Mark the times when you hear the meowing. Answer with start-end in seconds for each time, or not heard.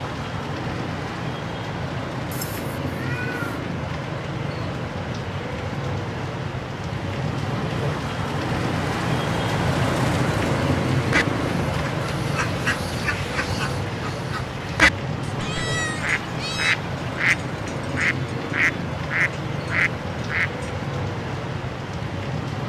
2.3-3.6, 15.2-16.8.